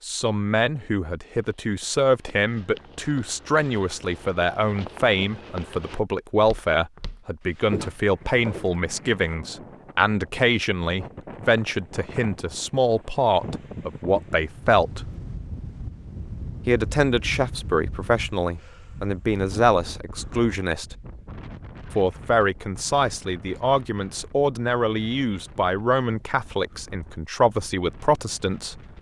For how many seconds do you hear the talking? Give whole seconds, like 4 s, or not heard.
26 s.